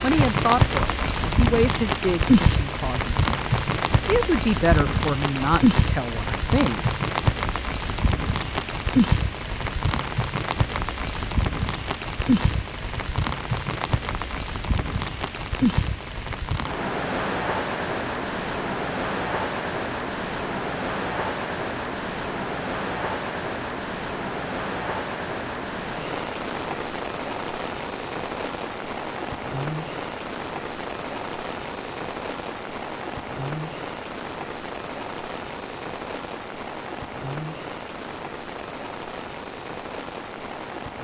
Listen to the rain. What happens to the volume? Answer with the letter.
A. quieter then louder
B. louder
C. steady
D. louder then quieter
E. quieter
E.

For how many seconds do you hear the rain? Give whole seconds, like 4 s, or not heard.
41 s.